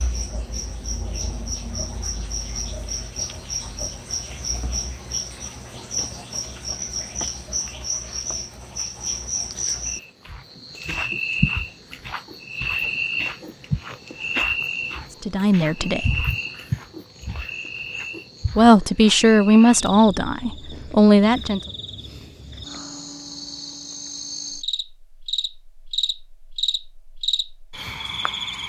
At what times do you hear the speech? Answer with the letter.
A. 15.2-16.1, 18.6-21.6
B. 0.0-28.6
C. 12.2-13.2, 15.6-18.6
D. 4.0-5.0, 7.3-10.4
A.